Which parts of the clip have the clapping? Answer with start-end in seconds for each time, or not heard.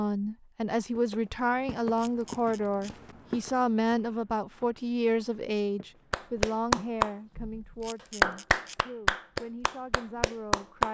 6.1-10.8.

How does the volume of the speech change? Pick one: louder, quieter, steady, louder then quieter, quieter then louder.
quieter.